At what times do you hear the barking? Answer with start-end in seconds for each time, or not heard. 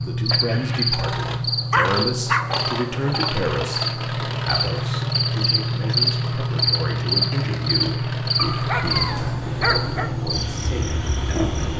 1.7-2.5, 8.3-10.1.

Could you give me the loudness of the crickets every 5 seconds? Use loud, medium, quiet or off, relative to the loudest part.
loud, loud, medium.